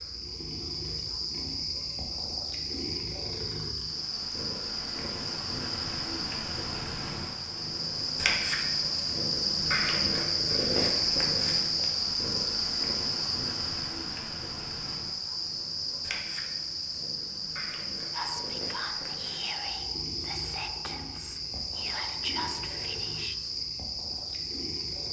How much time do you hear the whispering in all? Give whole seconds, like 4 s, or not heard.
5 s.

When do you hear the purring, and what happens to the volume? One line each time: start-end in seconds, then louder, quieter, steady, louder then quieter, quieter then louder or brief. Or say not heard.
0.0-25.0 louder then quieter.